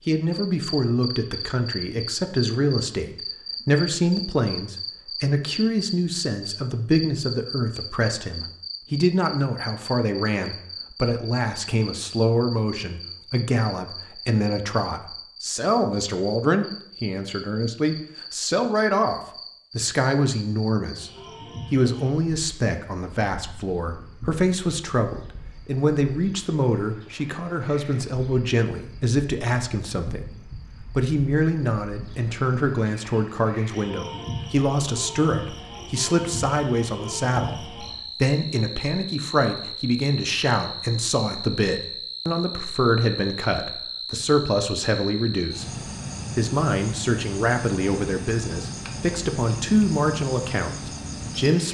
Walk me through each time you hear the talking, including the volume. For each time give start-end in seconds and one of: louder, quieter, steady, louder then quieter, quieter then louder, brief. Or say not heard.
0.1-51.6 steady.